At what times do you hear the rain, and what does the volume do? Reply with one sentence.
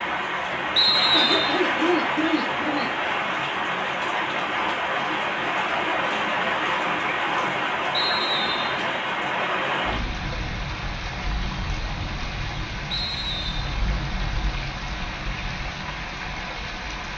You can hear the rain from 0.0 to 17.1 s, getting quieter.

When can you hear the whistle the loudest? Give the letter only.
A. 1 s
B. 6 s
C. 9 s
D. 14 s
A.